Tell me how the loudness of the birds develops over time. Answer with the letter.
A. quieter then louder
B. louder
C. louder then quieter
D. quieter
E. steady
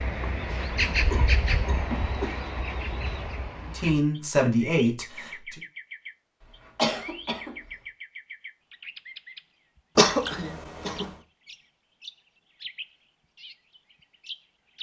D.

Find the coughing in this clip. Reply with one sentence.
You can hear the coughing from 0.9 to 2.5 s, from 6.8 to 7.5 s and from 9.9 to 11.1 s.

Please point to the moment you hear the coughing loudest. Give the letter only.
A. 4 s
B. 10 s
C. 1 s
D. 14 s
B.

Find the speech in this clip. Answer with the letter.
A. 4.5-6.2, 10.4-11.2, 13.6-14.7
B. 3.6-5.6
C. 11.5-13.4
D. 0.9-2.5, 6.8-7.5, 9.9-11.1
B.